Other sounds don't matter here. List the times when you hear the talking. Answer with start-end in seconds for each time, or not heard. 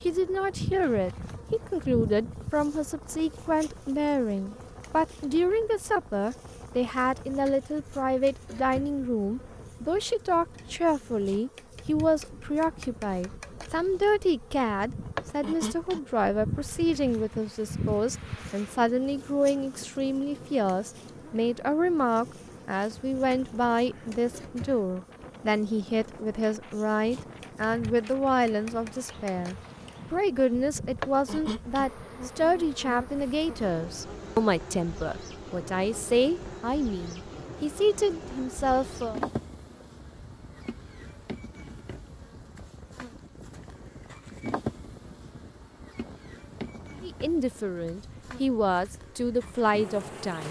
0.1-39.2, 47.0-50.4.